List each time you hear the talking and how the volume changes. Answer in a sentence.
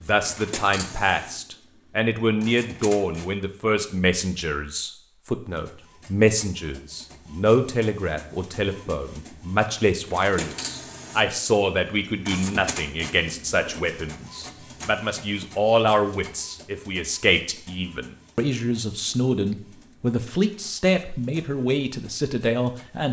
You can hear the talking from 0.1 to 23.0 s, at a steady volume.